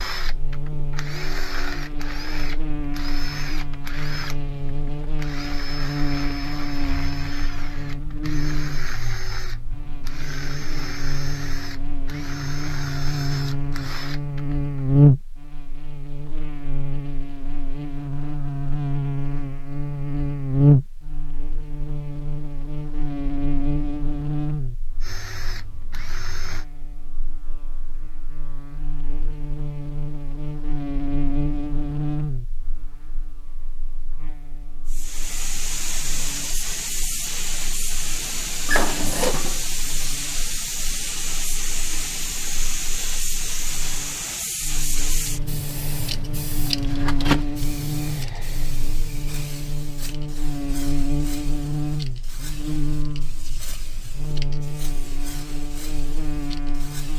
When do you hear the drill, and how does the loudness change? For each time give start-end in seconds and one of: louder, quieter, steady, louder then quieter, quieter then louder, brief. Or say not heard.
0.0-14.8 steady
25.0-26.6 brief.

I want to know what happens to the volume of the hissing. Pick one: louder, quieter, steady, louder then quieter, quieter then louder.
quieter.